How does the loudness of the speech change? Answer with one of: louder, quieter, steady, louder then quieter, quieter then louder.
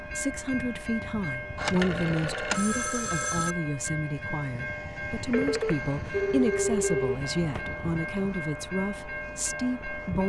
steady.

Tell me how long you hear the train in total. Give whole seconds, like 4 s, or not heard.
10 s.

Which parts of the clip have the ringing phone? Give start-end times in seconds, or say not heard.
1.6-3.5, 5.3-7.8.